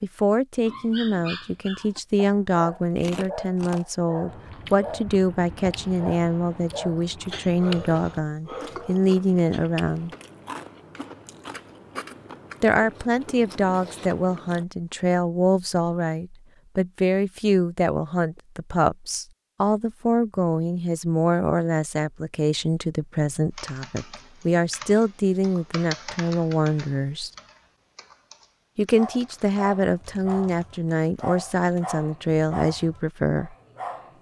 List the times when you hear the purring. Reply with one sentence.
You can't hear the purring here.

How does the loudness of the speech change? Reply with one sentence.
The loudness of the speech stays about the same.